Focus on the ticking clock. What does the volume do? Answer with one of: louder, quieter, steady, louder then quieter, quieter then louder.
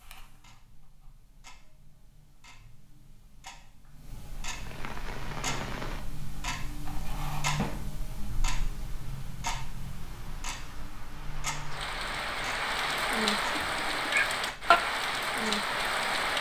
louder then quieter.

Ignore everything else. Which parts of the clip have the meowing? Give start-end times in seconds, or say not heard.
13.6-14.3.